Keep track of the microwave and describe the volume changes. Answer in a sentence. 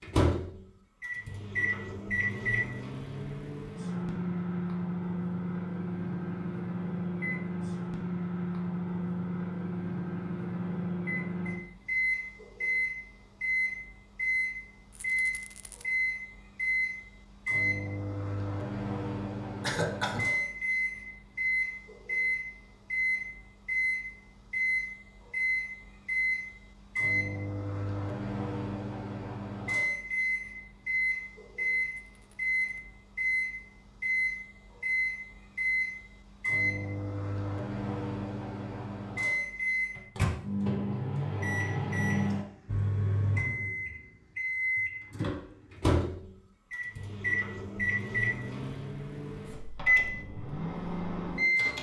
The volume of the microwave stays about the same.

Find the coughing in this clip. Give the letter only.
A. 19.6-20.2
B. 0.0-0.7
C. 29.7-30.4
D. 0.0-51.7
A.